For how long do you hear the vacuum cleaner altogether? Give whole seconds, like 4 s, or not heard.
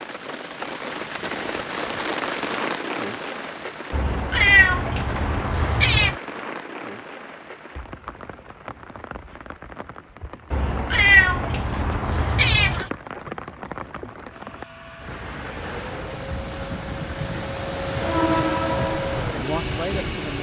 6 s.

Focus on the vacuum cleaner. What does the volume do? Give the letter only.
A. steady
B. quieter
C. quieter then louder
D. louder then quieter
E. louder
E.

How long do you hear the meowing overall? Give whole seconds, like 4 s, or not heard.
5 s.